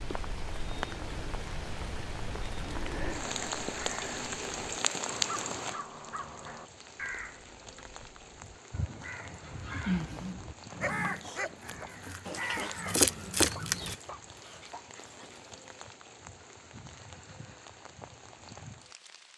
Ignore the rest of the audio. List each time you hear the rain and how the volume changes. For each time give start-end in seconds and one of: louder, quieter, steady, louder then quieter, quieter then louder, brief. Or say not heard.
0.0-19.3 quieter.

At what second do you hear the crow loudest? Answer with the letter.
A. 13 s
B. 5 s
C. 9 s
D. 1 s
A.